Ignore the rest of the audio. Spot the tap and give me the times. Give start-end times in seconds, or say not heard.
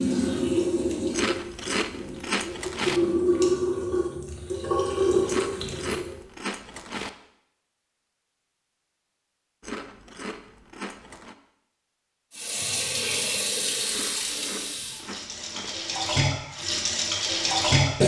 0.0-6.2, 12.3-18.0.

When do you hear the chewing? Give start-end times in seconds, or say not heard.
1.1-3.0, 5.2-7.1, 9.6-11.3, 13.9-15.8.